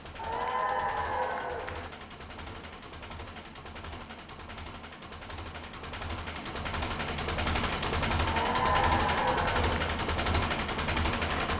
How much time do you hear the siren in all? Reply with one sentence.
You can't hear the siren here.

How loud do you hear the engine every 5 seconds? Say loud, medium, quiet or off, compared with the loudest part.
quiet, loud, loud.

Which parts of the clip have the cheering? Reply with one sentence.
The cheering can be heard from 0.1 to 1.9 s and from 8.2 to 9.9 s.